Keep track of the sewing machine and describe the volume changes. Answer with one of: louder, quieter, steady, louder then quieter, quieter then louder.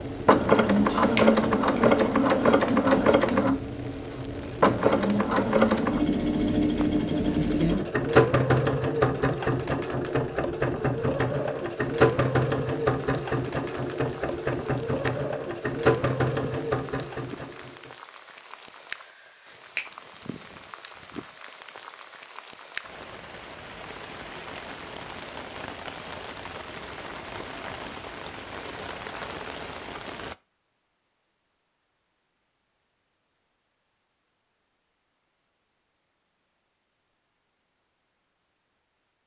quieter.